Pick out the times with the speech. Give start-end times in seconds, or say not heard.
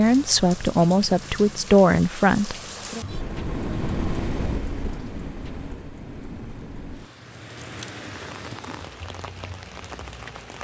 0.0-3.0.